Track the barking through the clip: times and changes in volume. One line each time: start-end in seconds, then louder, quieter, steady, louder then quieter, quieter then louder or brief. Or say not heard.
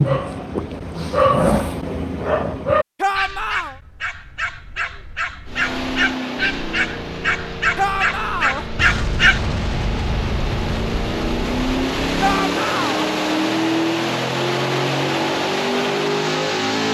0.0-9.4 quieter then louder.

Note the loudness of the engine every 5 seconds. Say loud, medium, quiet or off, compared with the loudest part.
off, medium, loud, loud.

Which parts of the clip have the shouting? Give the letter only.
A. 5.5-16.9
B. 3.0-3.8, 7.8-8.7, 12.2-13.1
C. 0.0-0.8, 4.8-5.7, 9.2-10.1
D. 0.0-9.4
B.